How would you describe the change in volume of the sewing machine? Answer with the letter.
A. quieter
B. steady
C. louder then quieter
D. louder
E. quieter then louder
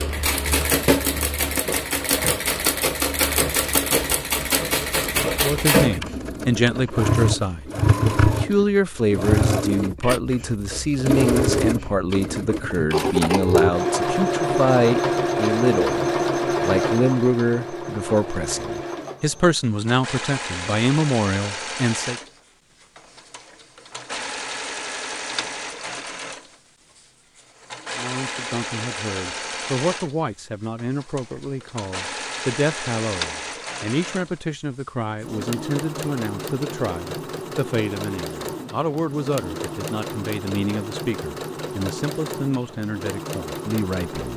A.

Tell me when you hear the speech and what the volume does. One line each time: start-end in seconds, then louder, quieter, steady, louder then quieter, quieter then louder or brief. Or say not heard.
5.4-22.2 steady
27.9-44.3 steady.